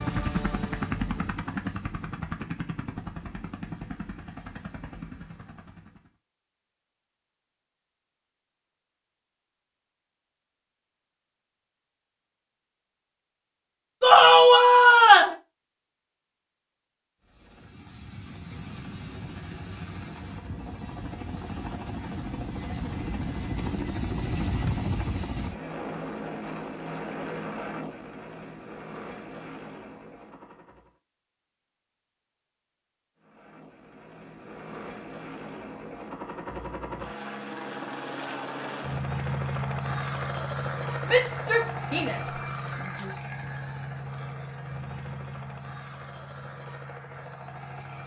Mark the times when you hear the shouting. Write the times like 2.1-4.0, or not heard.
14.0-15.3, 41.0-43.1.